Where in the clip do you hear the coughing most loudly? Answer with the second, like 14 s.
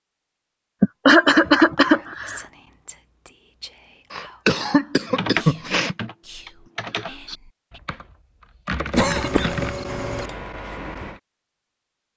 1 s.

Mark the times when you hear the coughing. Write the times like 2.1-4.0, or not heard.
0.8-2.4, 4.1-6.0, 8.9-10.3.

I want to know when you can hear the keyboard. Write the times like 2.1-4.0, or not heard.
5.1-8.1, 8.7-11.2.